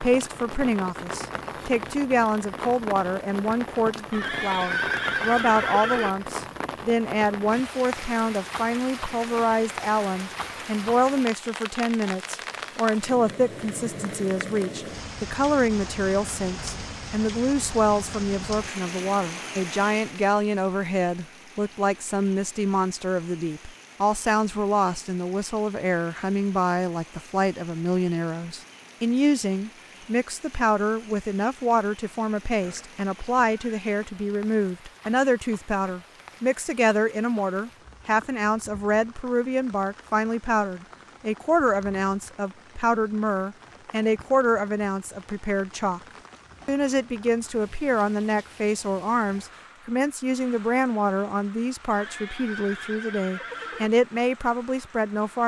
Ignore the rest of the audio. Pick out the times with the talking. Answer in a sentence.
The talking can be heard from 0.0 to 46.0 s and from 46.6 to 55.4 s.